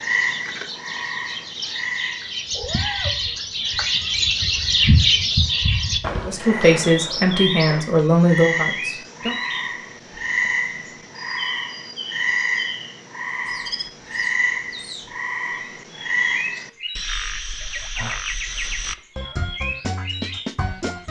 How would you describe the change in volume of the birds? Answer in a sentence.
The loudness of the birds goes up, then down.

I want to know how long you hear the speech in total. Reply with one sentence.
You can hear the speech for 3 seconds altogether.